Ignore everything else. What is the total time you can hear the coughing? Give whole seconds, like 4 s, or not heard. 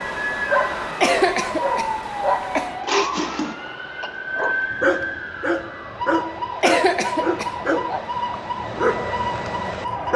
3 s.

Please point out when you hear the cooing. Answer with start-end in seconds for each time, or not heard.
not heard.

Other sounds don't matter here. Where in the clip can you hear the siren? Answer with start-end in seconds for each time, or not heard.
0.0-10.1.